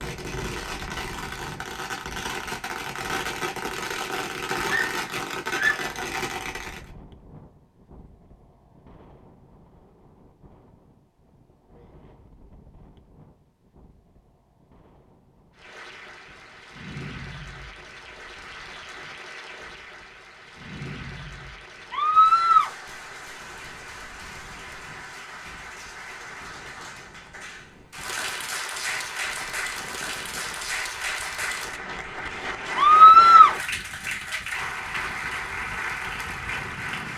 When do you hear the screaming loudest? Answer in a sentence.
The volume of the screaming peaks at 33 seconds.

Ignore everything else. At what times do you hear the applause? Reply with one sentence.
The applause can be heard from 15.6 to 37.1 s.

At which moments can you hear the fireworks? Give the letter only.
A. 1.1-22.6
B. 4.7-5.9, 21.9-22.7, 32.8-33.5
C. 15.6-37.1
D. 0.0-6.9
D.